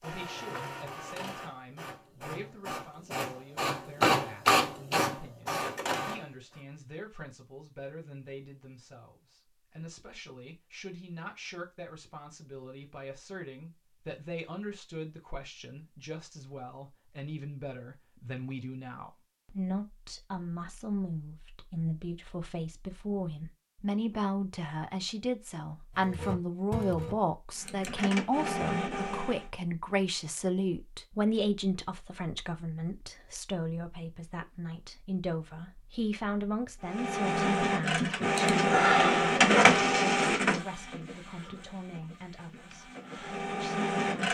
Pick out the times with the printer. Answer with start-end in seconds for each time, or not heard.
0.0-6.6, 25.9-29.4, 36.9-44.2.